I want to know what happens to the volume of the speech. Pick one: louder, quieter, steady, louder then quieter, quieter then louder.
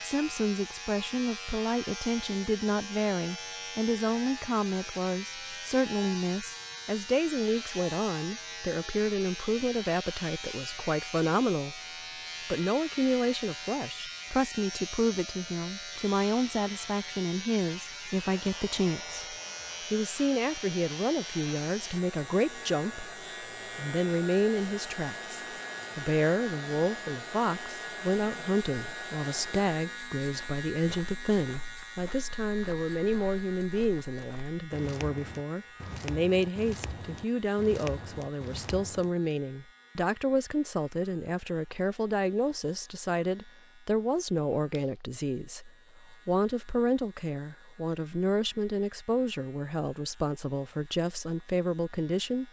steady.